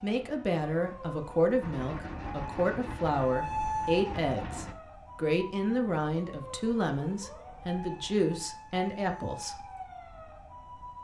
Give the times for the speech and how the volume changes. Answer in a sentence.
You can hear the speech from 0.0 to 9.6 s, at a steady volume.